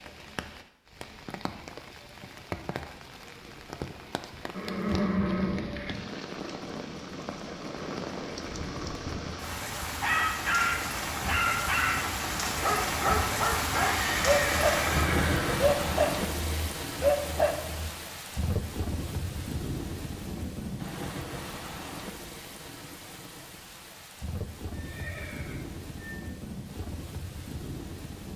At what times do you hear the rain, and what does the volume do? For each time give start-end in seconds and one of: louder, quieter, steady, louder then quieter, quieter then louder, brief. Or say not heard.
0.0-28.3 louder then quieter.